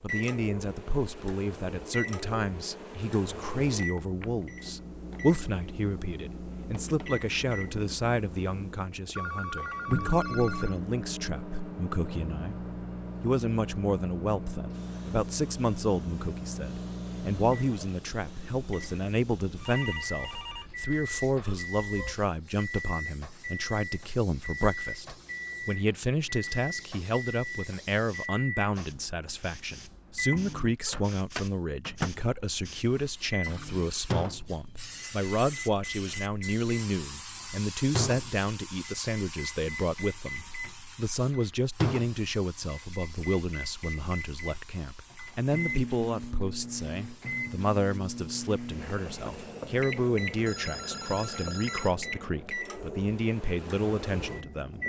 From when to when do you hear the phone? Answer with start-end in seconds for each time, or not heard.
9.2-10.8, 19.4-22.1, 50.5-52.0.